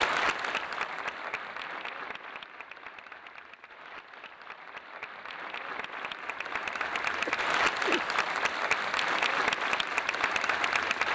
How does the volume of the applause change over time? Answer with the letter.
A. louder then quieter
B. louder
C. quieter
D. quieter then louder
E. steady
D.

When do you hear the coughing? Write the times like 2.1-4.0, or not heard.
6.9-8.2.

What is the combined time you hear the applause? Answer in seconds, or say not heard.
11 s.